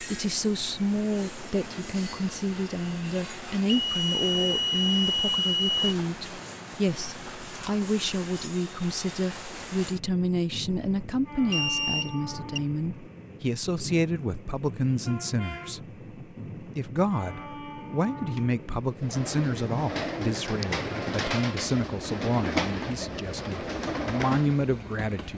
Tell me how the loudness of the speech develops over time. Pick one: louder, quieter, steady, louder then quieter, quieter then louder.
steady.